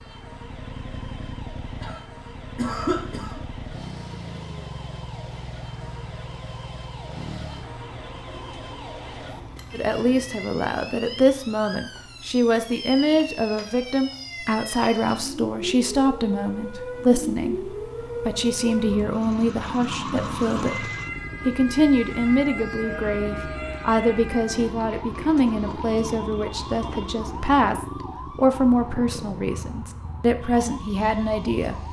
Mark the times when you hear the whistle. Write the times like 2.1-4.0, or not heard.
not heard.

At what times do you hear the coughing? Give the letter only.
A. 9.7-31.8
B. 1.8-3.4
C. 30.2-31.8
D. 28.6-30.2
B.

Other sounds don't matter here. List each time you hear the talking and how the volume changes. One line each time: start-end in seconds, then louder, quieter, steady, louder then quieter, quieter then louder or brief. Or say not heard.
9.7-31.8 steady.